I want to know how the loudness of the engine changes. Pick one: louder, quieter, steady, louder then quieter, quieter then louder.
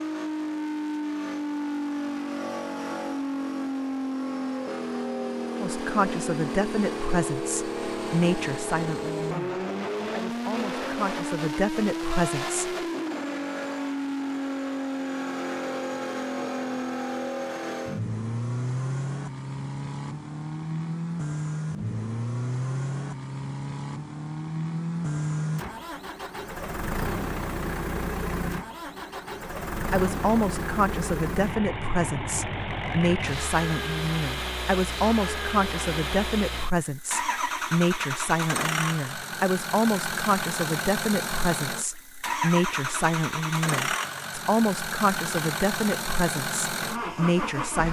steady.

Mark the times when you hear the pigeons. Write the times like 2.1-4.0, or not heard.
not heard.